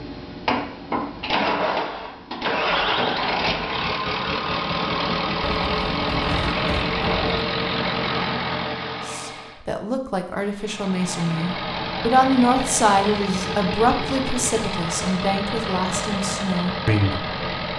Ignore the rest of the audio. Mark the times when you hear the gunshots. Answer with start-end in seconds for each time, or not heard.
5.4-7.5.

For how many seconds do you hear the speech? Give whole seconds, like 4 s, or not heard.
8 s.